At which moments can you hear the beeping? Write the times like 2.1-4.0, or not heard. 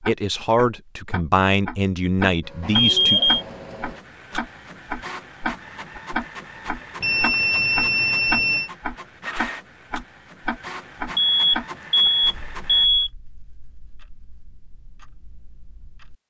2.8-3.5, 7.0-8.7, 11.2-13.1.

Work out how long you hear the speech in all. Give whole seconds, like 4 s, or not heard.
3 s.